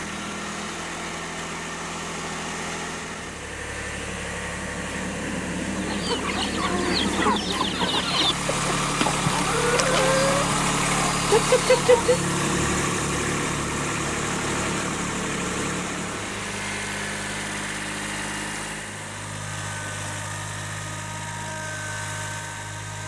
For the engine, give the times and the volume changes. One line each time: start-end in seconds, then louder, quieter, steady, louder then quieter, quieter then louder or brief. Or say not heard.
0.0-23.0 louder then quieter.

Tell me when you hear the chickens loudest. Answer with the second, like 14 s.
12 s.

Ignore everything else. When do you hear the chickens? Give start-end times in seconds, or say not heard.
5.8-12.2.